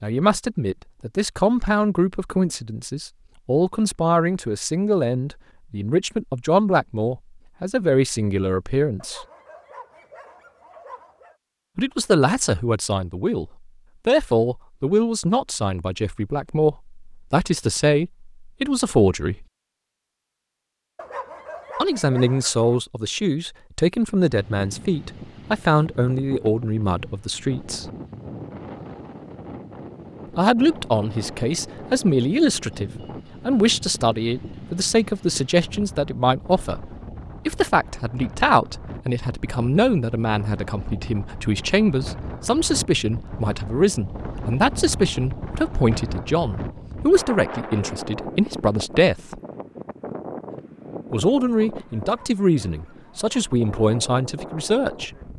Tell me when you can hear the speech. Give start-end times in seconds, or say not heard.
0.0-9.2, 11.8-19.4, 21.8-27.9, 30.4-49.4, 51.1-55.1.